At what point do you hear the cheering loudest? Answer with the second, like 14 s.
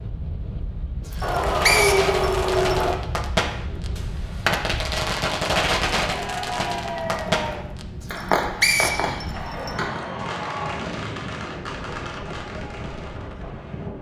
2 s.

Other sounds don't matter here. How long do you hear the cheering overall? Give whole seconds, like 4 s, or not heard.
5 s.